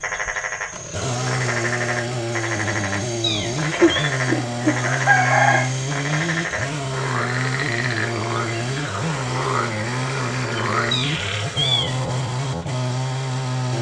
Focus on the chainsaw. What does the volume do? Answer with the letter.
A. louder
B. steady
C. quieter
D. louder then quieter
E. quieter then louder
B.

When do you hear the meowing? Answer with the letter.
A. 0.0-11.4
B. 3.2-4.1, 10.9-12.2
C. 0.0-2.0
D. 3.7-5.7
B.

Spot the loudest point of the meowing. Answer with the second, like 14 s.
12 s.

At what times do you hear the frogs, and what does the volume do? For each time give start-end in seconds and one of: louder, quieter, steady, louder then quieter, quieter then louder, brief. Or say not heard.
0.0-11.4 steady.